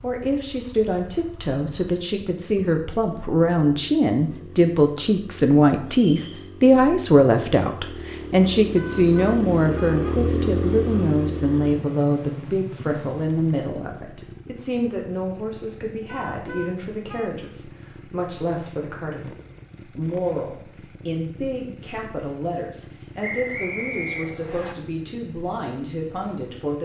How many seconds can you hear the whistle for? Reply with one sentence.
The whistle can be heard for 2 seconds in total.